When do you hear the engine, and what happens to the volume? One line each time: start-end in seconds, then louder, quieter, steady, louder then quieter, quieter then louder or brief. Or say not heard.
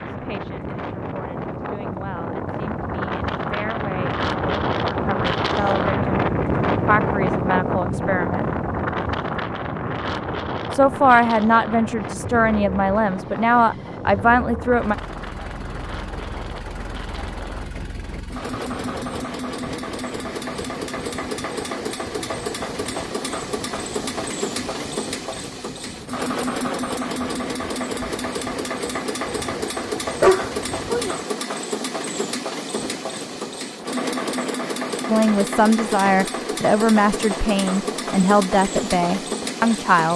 12.1-40.1 louder.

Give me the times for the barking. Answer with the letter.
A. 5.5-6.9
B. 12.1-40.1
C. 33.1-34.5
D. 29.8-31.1
D.